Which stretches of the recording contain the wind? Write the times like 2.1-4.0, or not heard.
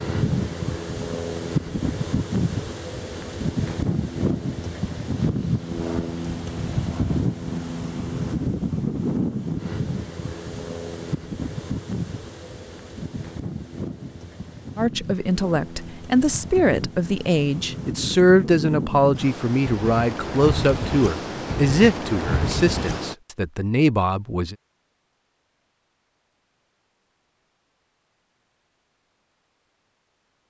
0.0-23.1.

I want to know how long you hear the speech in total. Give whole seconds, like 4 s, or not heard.
10 s.